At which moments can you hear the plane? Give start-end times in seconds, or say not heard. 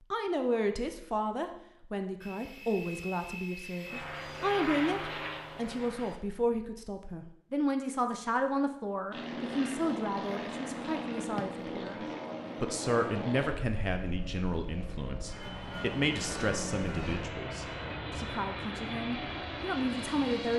2.2-6.2, 9.1-20.5.